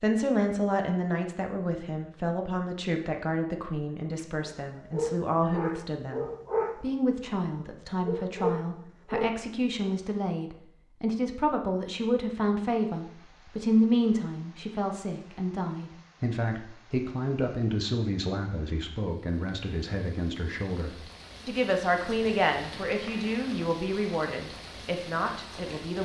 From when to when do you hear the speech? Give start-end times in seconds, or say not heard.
0.0-26.0.